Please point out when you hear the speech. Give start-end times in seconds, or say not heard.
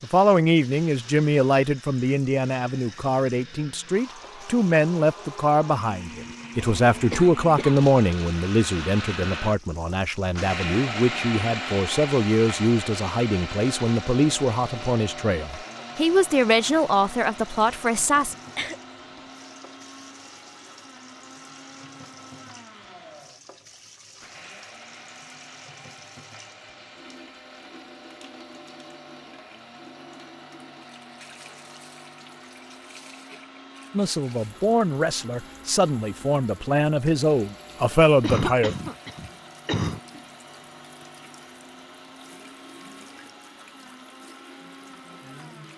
0.0-18.4, 33.9-38.8.